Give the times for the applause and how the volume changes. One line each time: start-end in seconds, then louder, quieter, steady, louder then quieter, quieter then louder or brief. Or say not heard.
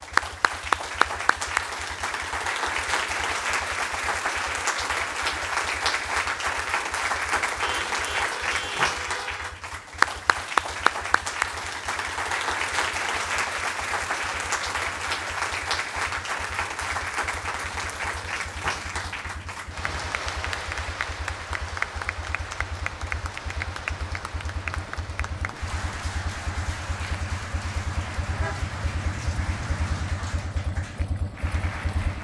0.0-32.1 quieter.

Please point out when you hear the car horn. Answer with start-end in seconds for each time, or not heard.
7.6-9.6, 28.3-30.1.